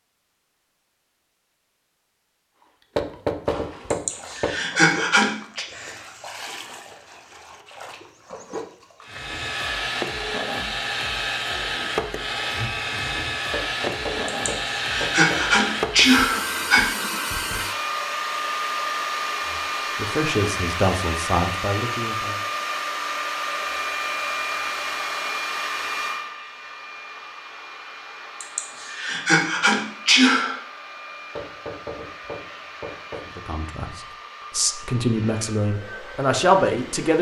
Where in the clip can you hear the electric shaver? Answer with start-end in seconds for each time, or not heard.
not heard.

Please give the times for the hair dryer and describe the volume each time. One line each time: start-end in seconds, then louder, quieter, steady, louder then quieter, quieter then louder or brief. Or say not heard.
9.0-37.1 quieter.